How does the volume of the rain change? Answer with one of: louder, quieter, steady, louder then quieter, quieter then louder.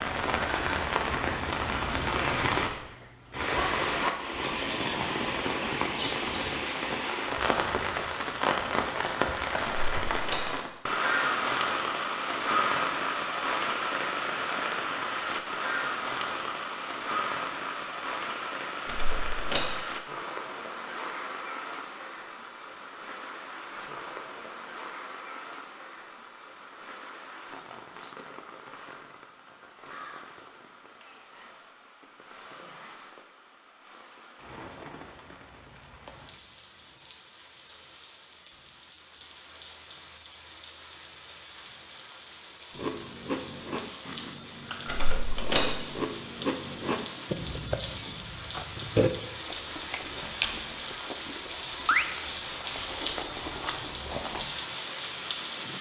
quieter then louder.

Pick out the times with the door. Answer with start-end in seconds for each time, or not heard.
9.7-10.5, 18.9-19.8, 44.9-45.8.